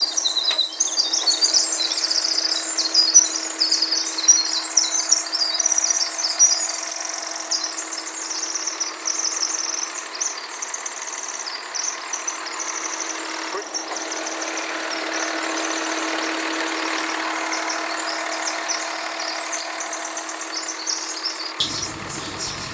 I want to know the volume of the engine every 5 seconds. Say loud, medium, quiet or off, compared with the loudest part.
medium, medium, medium, loud, medium.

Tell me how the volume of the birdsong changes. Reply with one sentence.
The loudness of the birdsong goes down.